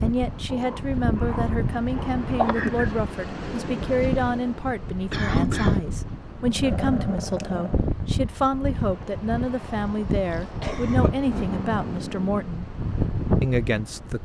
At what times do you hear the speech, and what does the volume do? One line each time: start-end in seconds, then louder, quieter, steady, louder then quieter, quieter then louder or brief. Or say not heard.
0.0-12.7 steady
13.4-14.2 brief.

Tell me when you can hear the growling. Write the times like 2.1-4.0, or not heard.
0.5-2.2, 6.4-7.8, 11.2-12.5.